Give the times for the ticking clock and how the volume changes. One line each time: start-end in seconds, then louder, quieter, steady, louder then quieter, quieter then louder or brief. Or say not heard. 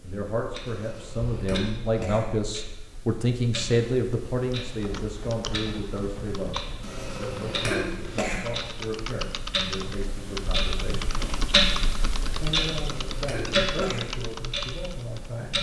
0.0-15.5 louder.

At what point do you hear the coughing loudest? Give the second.
8 s.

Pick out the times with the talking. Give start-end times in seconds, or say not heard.
0.0-11.2, 12.4-15.5.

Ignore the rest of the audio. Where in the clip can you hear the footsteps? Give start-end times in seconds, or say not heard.
not heard.